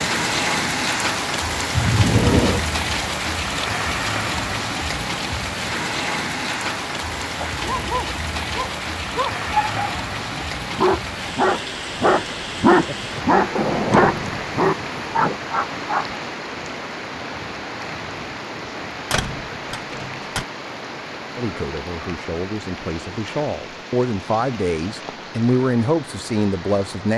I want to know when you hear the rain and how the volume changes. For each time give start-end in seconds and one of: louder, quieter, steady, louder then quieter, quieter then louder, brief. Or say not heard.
0.0-27.1 quieter.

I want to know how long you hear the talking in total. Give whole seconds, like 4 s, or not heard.
6 s.